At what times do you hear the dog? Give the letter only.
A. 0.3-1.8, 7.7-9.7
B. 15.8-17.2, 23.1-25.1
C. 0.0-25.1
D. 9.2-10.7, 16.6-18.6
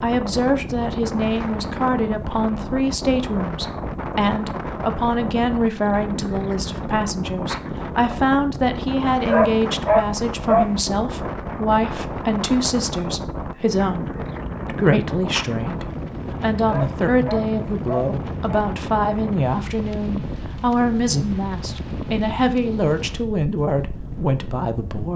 D.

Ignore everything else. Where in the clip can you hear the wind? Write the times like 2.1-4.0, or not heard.
0.0-25.1.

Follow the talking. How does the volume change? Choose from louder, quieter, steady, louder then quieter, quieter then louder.
steady.